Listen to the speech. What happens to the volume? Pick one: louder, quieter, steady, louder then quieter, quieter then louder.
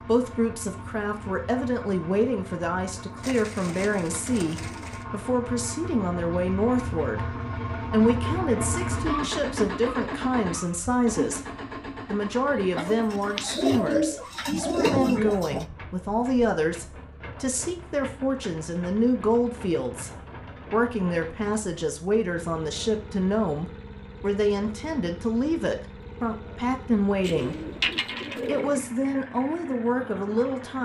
steady.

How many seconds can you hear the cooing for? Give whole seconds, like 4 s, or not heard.
6 s.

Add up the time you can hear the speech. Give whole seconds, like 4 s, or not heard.
31 s.